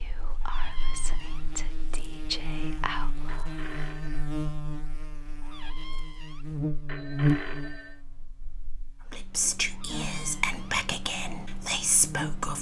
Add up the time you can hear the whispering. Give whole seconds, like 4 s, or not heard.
7 s.